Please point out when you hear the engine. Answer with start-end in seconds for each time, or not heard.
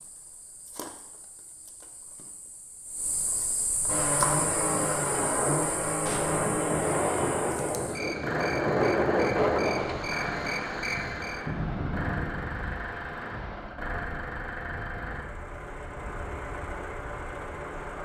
3.9-18.0.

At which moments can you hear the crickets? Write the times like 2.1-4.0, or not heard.
0.0-11.4.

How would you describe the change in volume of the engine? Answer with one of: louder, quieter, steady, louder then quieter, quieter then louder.
quieter.